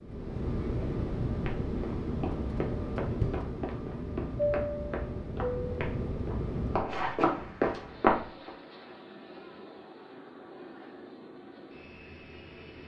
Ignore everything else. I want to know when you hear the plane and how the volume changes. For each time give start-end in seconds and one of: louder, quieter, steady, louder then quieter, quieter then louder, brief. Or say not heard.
0.0-12.8 quieter.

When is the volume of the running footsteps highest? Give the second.
8 s.